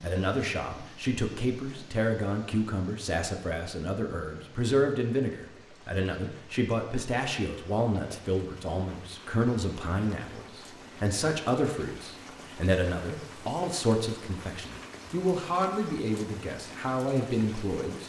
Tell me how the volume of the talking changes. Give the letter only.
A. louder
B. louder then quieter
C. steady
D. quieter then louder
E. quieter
C.